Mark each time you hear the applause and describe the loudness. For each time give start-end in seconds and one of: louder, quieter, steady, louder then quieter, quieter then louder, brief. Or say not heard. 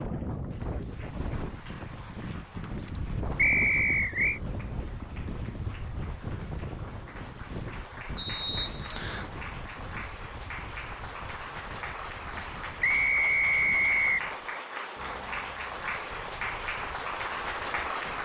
0.0-18.2 louder.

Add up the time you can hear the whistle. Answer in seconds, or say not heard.
4 s.